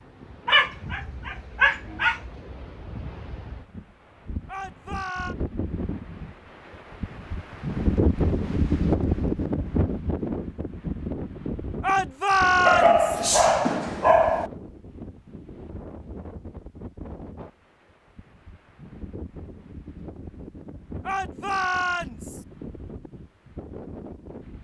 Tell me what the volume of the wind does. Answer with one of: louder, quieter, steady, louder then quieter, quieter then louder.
louder then quieter.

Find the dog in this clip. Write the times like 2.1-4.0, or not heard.
0.5-2.2, 12.7-14.5.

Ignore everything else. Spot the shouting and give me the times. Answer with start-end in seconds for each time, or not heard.
4.5-5.3, 11.8-13.2, 21.1-22.4.